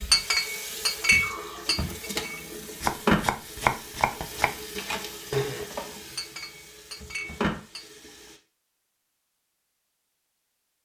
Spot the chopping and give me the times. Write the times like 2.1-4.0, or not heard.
2.8-4.5.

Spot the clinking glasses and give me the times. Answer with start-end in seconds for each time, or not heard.
0.1-2.4, 6.2-7.8.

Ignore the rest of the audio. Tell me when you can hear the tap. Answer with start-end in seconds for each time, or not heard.
0.0-8.4.